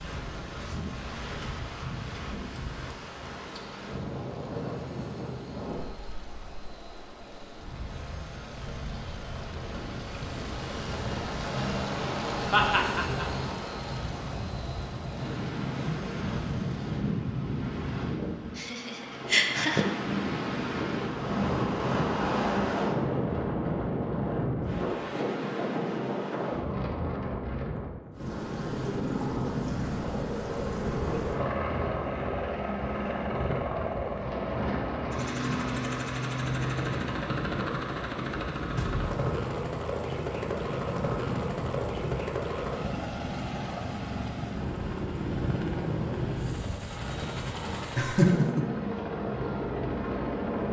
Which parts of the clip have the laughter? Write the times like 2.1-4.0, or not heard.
12.5-13.4, 18.6-19.9, 48.0-48.6.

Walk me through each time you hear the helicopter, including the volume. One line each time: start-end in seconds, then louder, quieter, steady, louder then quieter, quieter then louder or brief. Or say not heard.
0.0-17.1 louder then quieter
28.1-50.6 steady.